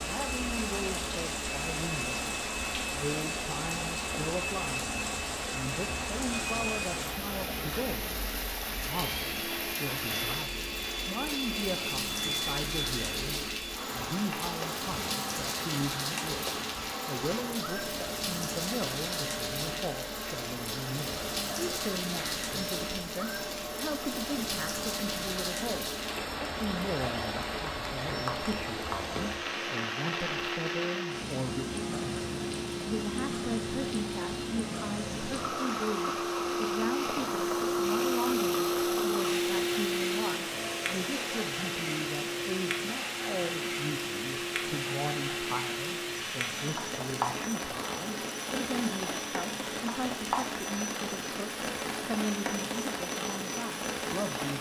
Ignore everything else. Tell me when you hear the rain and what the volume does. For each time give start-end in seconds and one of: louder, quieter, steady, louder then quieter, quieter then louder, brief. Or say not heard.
0.0-54.5 steady.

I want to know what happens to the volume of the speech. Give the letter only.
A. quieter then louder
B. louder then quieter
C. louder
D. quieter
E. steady
E.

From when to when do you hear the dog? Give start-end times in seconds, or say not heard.
not heard.